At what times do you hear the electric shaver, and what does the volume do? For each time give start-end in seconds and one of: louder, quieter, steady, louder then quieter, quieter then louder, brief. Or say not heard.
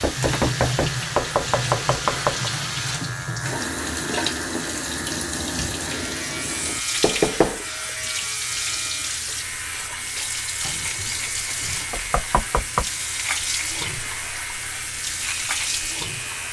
0.0-16.4 steady.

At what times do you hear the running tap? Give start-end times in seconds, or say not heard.
0.0-16.4.